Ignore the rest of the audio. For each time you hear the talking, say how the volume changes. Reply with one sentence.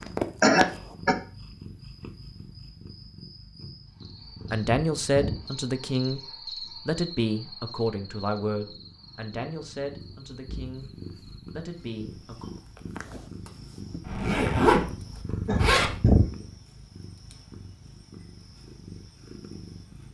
The talking can be heard from 4.5 to 10.8 s, getting quieter; and briefly from 11.5 to 12.5 s.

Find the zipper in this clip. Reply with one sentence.
You can hear the zipper from 14.0 to 16.0 s.